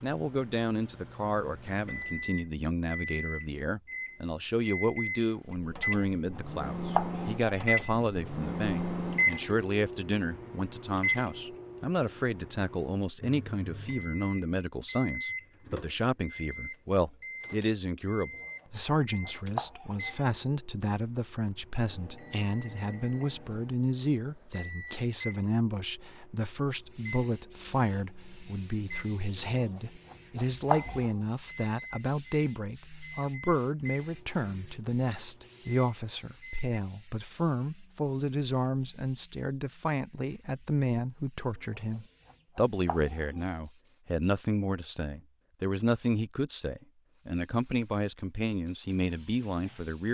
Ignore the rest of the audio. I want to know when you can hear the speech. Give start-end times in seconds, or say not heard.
0.0-50.0.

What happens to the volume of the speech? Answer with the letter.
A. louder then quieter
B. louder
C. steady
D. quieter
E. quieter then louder
C.